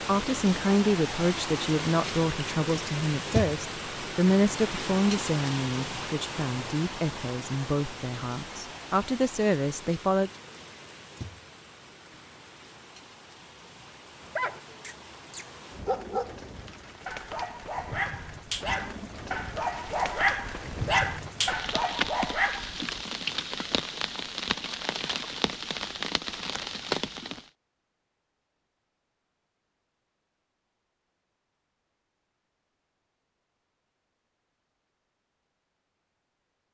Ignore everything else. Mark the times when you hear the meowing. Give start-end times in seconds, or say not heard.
not heard.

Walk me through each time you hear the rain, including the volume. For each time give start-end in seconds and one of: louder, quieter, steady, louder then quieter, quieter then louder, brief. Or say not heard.
0.0-27.5 quieter then louder.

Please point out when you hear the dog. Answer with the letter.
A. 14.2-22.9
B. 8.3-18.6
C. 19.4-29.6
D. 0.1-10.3
A.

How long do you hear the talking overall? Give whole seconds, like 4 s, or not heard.
10 s.